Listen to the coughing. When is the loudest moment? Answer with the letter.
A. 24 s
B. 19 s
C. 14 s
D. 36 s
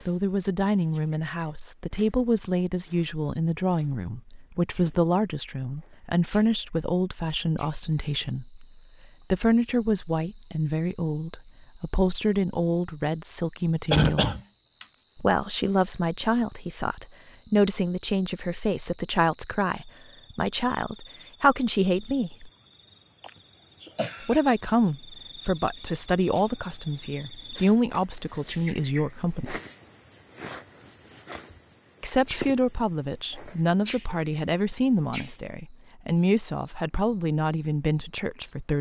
C.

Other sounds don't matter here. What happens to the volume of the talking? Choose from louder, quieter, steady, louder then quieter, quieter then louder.
steady.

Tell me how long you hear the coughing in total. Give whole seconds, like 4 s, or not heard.
2 s.